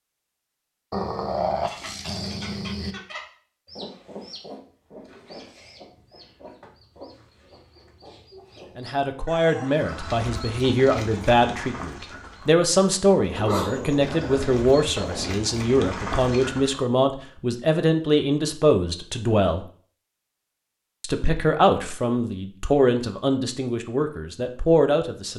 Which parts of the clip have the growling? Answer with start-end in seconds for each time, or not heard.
0.9-3.0, 13.2-15.3.